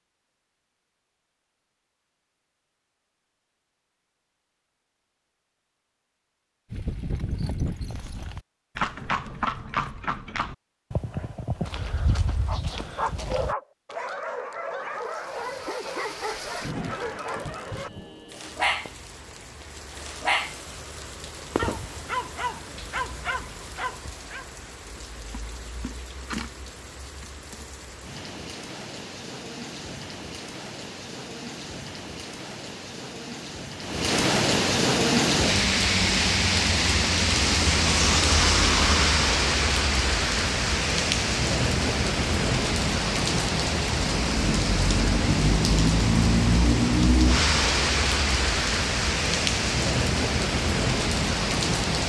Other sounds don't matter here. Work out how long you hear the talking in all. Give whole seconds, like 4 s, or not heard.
not heard.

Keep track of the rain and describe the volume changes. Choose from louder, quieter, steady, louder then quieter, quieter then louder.
louder.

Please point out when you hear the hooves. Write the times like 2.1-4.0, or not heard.
6.7-13.6.